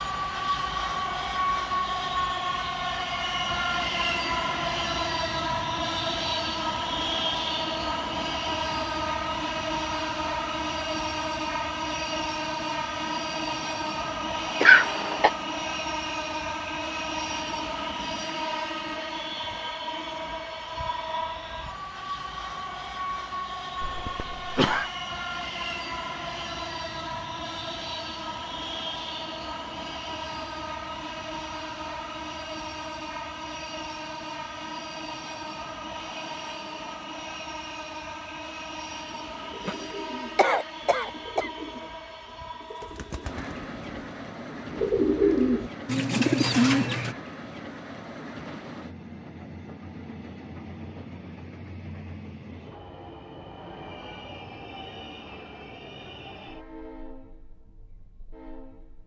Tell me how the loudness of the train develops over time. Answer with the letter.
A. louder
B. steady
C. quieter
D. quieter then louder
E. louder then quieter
C.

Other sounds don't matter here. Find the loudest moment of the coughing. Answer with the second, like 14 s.
15 s.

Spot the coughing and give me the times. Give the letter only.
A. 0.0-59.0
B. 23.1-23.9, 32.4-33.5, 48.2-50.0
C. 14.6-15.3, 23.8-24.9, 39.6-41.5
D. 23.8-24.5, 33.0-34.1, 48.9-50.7
C.